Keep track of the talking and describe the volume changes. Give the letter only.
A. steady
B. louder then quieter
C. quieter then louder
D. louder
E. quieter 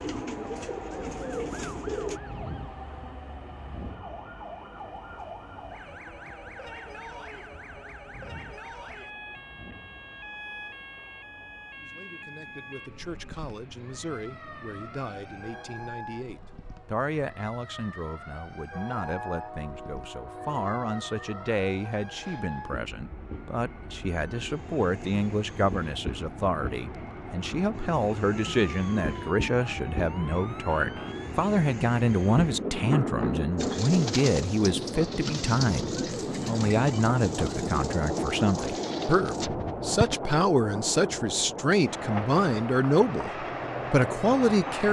D.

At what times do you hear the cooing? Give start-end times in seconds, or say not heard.
0.0-2.2, 33.5-40.2.